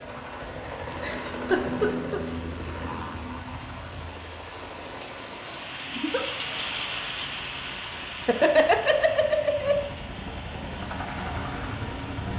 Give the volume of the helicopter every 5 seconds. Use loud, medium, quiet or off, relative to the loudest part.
loud, medium, loud.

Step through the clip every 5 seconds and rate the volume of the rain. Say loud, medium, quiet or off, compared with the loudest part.
medium, loud, medium.